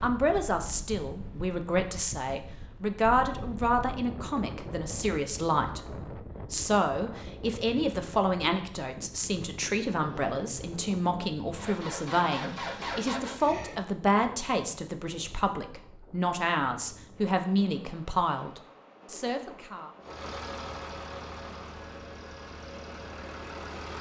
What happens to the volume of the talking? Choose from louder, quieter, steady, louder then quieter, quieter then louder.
steady.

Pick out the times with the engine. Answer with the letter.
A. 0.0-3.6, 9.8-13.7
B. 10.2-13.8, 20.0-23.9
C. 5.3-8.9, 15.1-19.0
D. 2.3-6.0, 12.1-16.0
B.